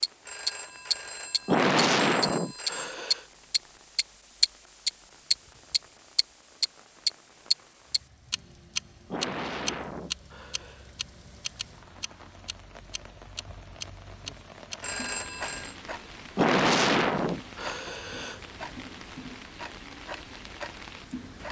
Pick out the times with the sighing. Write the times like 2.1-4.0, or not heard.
1.4-3.2, 9.1-10.9, 16.4-18.4.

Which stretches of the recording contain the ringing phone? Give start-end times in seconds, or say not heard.
0.2-3.0, 14.8-15.8.